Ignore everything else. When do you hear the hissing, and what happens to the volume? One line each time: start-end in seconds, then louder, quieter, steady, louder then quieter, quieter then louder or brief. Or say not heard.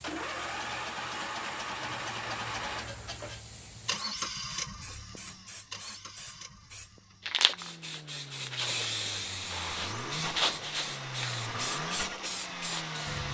0.0-13.2 louder.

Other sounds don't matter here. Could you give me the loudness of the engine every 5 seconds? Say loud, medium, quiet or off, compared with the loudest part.
loud, medium, loud.